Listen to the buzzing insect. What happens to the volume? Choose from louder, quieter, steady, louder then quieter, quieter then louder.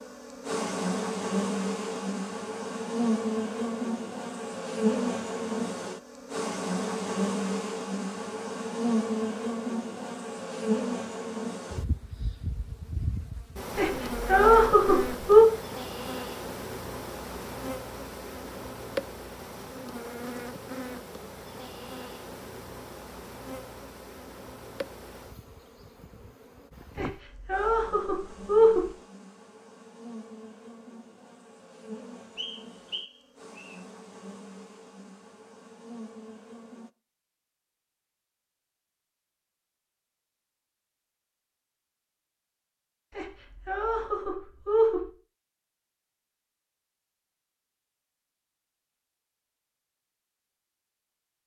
quieter.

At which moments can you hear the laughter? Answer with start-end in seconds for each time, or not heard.
13.8-15.4, 26.9-28.9, 43.1-45.0.